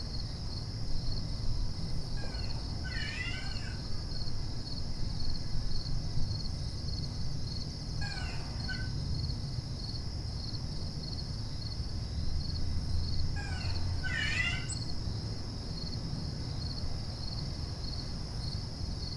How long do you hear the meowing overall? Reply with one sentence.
You can hear the meowing for 4 seconds altogether.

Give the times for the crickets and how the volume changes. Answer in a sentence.
The crickets can be heard from 0.0 to 19.1 s, at a steady volume.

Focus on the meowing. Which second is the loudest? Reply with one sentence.
The volume of the meowing peaks at 14 seconds.